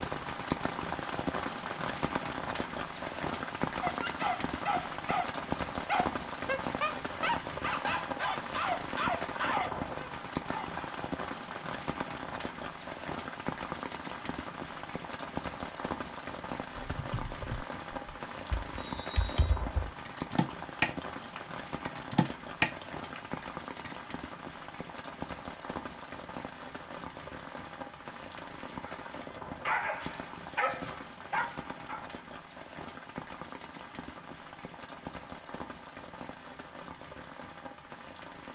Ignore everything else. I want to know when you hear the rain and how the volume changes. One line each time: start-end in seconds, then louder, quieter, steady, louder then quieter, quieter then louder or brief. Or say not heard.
0.0-38.5 quieter.